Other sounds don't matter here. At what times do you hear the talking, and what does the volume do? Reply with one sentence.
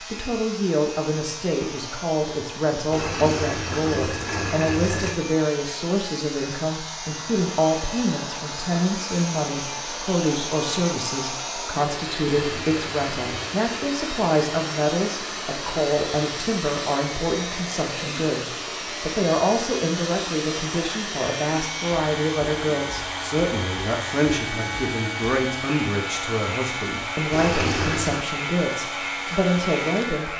The talking can be heard from 0.1 to 30.3 s, at a steady volume.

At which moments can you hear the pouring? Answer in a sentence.
The pouring can be heard from 2.9 to 5.2 s, from 12.4 to 13.7 s and from 27.3 to 28.2 s.